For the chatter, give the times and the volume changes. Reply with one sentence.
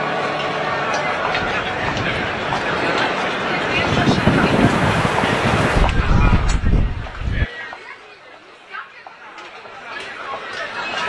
You can hear the chatter from 0.0 to 11.0 s, getting quieter.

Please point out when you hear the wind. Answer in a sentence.
You can hear the wind from 0.1 to 7.5 s.